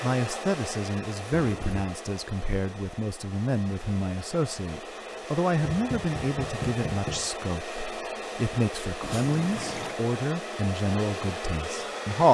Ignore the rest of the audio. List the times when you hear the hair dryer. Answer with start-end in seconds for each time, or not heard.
0.0-12.2.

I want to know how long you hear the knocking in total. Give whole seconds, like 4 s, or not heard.
2 s.